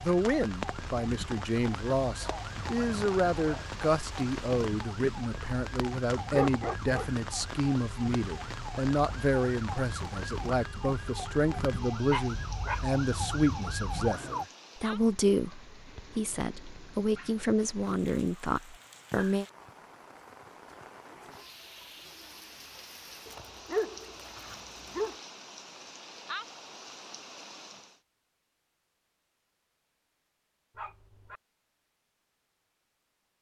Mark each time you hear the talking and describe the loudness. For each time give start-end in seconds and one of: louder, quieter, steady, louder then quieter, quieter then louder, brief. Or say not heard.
0.0-19.4 steady.